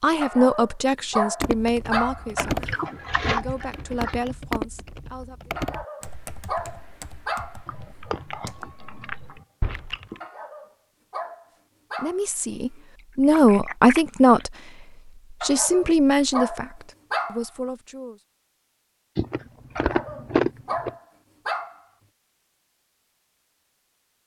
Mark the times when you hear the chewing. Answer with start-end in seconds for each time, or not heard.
2.4-4.2, 7.7-10.2, 12.5-14.4, 19.1-20.9.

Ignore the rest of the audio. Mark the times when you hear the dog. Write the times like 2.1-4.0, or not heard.
0.2-2.9, 5.5-7.6, 10.2-12.8, 15.4-17.4, 19.8-21.8.